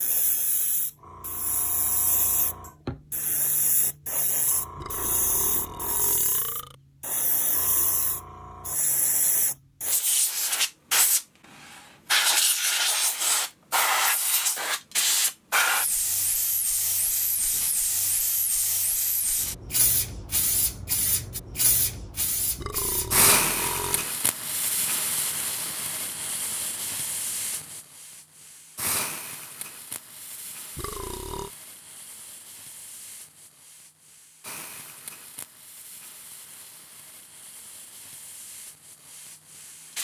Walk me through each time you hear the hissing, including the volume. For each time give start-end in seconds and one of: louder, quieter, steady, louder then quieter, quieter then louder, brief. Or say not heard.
0.0-39.9 louder then quieter.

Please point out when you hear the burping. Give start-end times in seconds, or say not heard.
4.8-6.8, 22.6-24.1, 30.8-31.5.